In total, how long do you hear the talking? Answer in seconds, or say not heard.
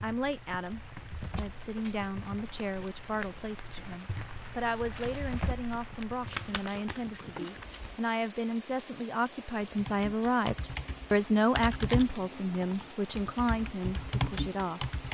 15 s.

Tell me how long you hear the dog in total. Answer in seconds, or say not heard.
not heard.